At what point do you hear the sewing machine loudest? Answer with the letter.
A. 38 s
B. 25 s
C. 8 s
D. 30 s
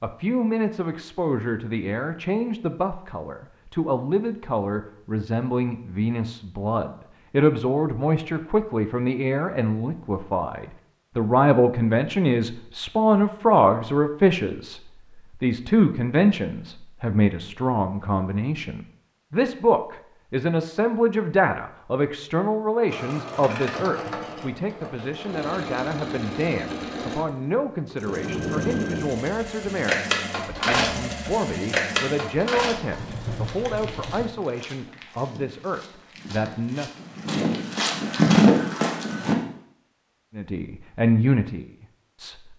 D.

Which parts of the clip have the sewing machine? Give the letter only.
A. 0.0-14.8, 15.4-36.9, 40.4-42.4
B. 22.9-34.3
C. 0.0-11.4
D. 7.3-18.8
B.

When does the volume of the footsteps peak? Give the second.
38 s.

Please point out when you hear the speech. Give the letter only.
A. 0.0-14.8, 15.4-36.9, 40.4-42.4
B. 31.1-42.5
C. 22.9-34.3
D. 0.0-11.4
A.